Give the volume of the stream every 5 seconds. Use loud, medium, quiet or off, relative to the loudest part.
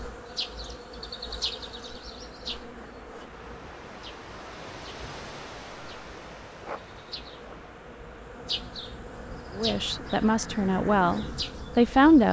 loud, loud, off.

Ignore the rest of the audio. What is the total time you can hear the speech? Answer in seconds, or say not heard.
3 s.